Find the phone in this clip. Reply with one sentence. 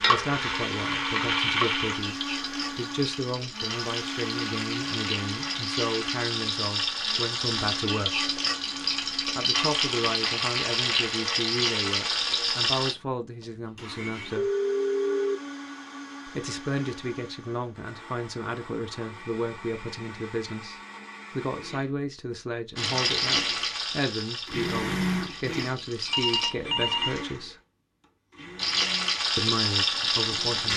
You can hear the phone from 1.4 to 1.9 s, from 14.3 to 15.4 s and from 26.1 to 27.2 s.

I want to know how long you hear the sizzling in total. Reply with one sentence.
The sizzling can be heard for 19 seconds in total.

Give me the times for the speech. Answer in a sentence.
You can hear the speech from 0.1 to 8.2 s, from 9.3 to 14.4 s, from 16.2 to 27.6 s and from 29.4 to 30.7 s.